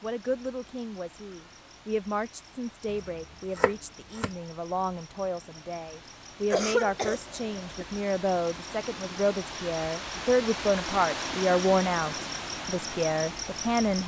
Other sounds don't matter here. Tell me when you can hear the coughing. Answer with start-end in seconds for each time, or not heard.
6.5-7.8.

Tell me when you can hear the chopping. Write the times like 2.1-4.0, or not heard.
2.9-4.3.